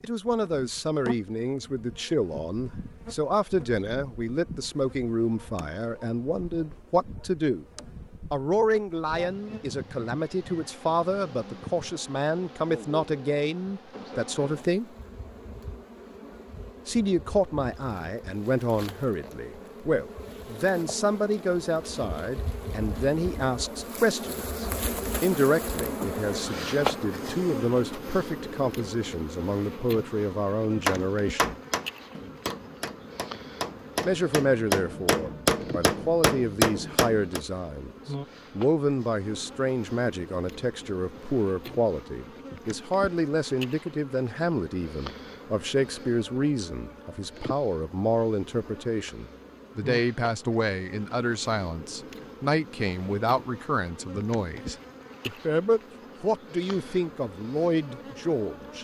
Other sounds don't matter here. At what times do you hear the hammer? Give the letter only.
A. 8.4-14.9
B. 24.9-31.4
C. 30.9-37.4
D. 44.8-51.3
C.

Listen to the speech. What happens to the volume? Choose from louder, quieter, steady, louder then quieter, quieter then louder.
steady.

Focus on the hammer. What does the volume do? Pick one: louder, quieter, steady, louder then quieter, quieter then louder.
quieter then louder.